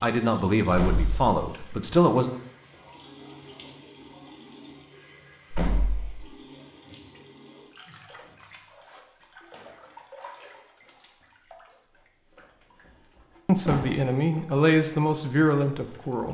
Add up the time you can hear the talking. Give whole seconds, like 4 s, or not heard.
5 s.